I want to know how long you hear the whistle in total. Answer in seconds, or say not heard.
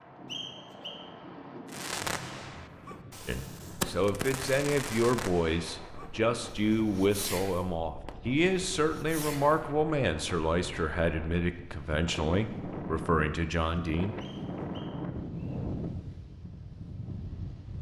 2 s.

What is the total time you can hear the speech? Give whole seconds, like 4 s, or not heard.
11 s.